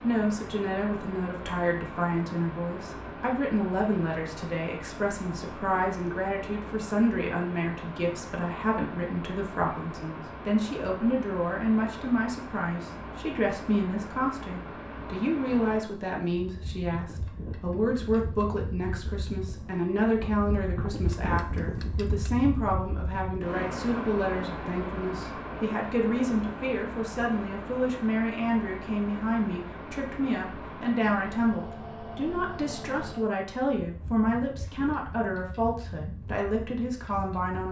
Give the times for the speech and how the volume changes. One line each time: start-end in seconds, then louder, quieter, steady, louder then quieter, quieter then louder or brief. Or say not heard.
0.0-37.6 steady.